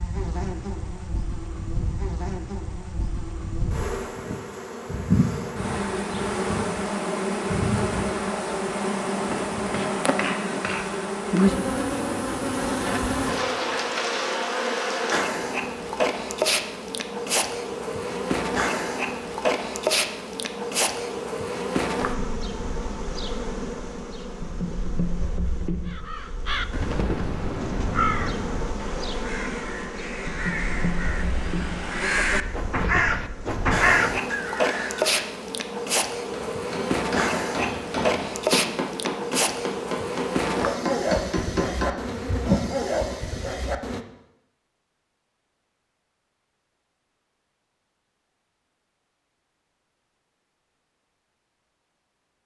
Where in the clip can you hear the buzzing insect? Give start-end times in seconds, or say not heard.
0.0-44.0.